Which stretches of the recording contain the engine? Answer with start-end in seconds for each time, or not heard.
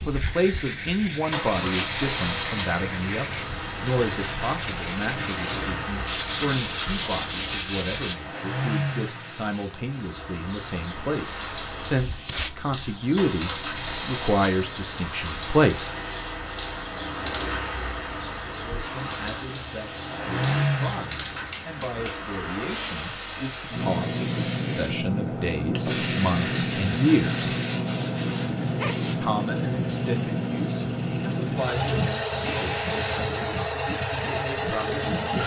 0.0-35.4.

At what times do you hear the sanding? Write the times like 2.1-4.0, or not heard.
0.1-8.2, 25.8-29.1.